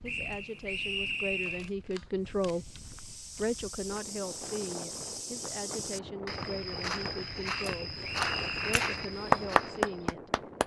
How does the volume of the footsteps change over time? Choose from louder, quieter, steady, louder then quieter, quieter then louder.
louder.